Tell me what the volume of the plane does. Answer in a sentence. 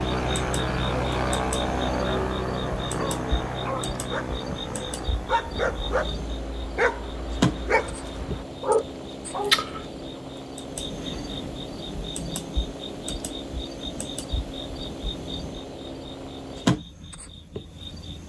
The volume of the plane goes down.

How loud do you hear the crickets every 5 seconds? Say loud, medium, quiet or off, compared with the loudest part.
medium, loud, medium, loud.